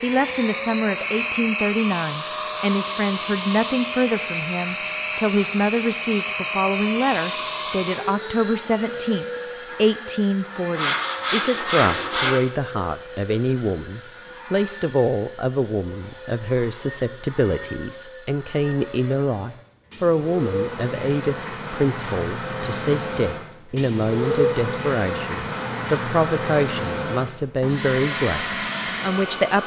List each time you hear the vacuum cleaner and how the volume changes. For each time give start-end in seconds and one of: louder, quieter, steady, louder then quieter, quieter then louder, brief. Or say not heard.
0.0-29.6 quieter then louder.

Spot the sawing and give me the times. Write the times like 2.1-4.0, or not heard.
10.8-12.4.